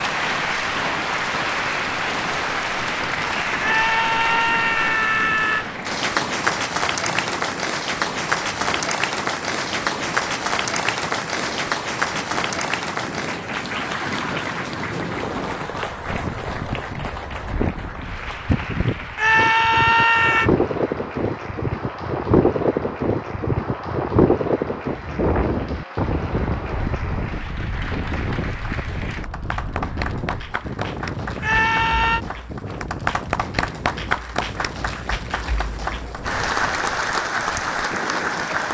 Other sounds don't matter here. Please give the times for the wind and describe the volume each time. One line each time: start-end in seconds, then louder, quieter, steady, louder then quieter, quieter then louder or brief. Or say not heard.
0.0-38.6 louder then quieter.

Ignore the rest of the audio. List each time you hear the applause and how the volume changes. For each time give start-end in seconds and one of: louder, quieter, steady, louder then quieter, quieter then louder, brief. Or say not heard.
0.0-38.6 quieter then louder.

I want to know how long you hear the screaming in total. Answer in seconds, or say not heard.
4 s.